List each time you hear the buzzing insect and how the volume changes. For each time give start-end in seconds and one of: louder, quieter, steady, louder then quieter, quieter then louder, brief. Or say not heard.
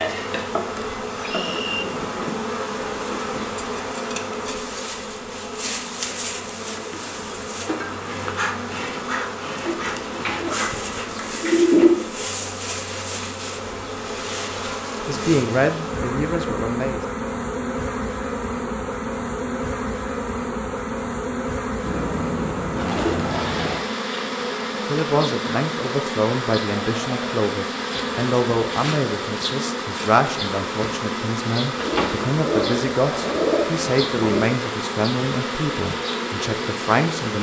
0.0-37.3 steady.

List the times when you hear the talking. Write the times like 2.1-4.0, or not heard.
15.1-17.0, 24.9-37.3.